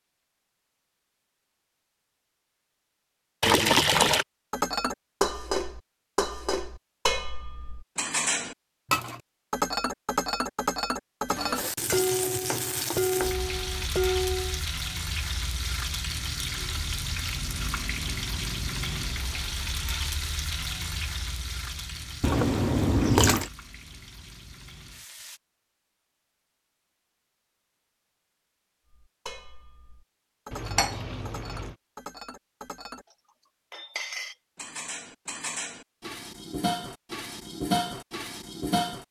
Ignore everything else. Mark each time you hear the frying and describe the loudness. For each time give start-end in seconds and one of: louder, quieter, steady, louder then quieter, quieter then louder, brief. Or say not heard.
11.2-25.4 quieter.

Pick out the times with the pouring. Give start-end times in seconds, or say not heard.
3.4-4.2, 22.2-23.5, 30.5-31.8.